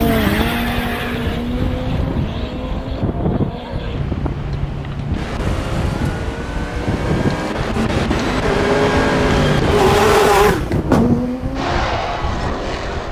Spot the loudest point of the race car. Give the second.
10 s.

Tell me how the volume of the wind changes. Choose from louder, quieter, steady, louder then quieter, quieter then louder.
steady.